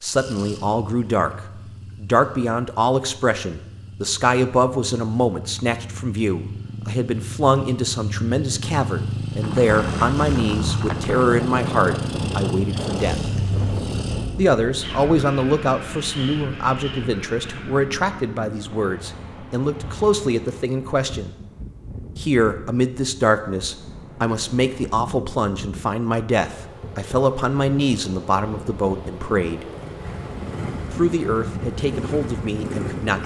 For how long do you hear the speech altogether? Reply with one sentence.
The speech can be heard for 30 seconds in total.